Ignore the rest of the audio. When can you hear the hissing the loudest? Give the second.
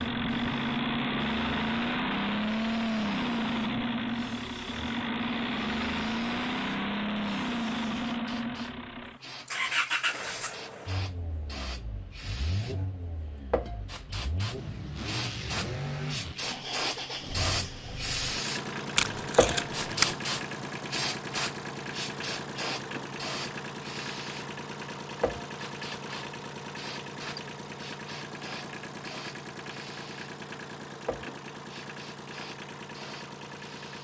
20 s.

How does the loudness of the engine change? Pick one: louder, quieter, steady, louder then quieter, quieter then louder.
quieter.